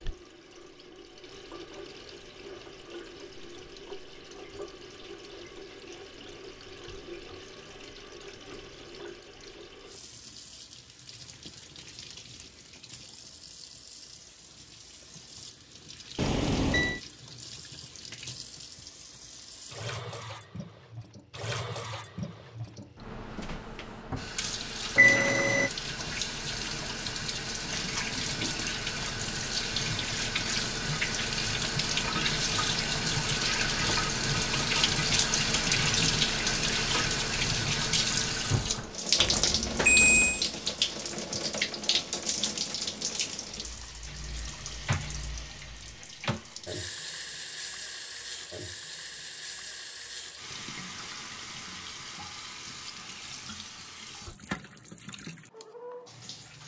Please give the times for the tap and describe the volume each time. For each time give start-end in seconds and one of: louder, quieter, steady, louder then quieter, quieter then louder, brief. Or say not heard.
0.0-56.6 louder then quieter.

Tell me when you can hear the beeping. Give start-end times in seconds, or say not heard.
16.1-17.0, 24.9-25.7, 39.1-40.5.